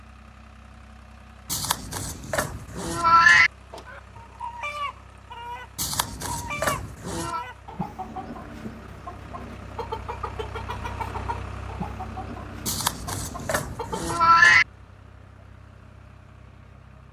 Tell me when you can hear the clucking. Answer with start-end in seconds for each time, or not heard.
3.9-14.2.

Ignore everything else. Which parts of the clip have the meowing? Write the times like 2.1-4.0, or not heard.
1.5-3.5, 5.8-7.4, 12.7-14.7.